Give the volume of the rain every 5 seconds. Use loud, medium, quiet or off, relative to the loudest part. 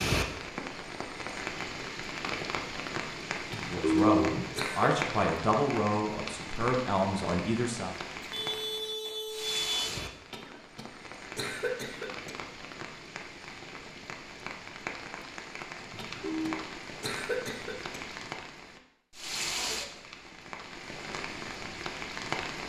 loud, loud, medium, loud, loud.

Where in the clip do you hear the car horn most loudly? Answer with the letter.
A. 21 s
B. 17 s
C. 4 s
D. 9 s
C.